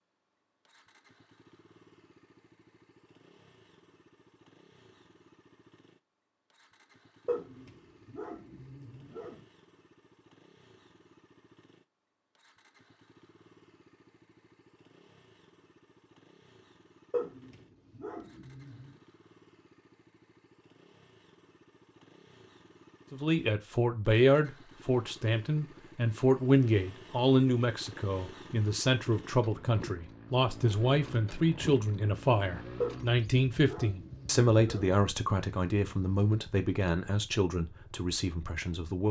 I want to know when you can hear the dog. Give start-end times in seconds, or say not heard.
7.2-9.4, 17.1-18.9, 32.8-35.0.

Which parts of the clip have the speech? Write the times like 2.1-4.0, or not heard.
23.1-39.0.